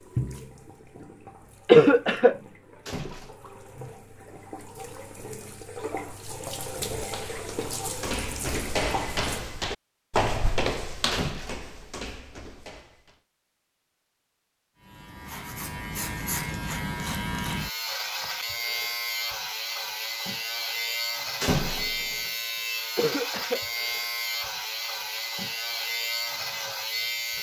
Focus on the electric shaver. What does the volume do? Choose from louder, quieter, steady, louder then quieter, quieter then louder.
steady.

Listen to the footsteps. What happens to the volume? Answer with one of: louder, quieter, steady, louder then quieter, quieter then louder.
louder then quieter.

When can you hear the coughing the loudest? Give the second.
2 s.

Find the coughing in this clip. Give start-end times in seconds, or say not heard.
1.6-2.4, 22.9-23.6.